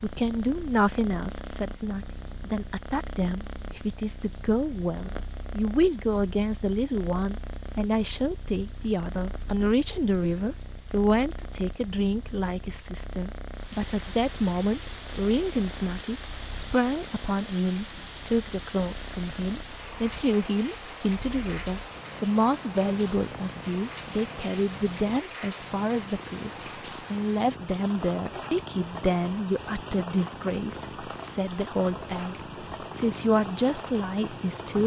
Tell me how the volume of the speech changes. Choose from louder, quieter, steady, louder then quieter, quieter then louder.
steady.